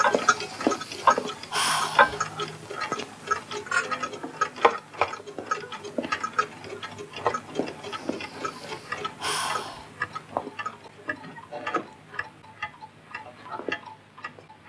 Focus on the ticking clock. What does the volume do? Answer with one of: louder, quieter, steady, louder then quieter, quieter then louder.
quieter.